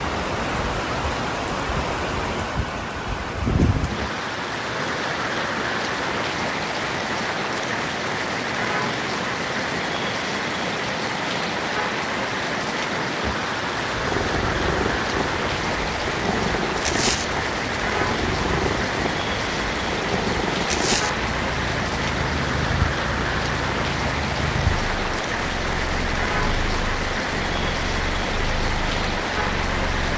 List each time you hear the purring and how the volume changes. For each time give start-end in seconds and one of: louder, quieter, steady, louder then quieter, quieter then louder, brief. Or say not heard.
13.9-30.1 quieter.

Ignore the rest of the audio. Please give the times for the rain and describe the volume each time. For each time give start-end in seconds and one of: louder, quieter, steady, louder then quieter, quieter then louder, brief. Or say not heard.
0.0-30.1 steady.